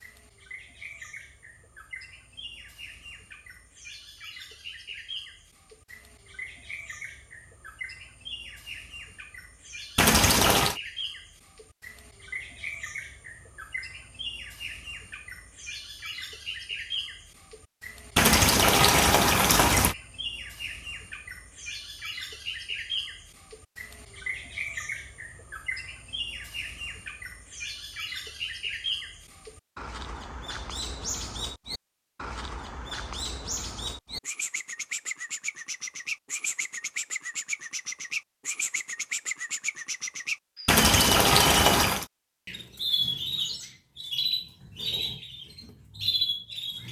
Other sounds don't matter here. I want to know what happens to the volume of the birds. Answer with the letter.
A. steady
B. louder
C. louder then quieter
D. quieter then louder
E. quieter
B.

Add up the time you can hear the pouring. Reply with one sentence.
You can hear the pouring for 4 seconds altogether.